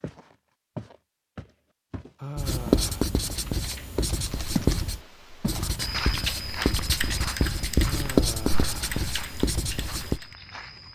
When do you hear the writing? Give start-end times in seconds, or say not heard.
2.4-10.2.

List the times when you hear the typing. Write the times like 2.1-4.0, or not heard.
3.4-10.2.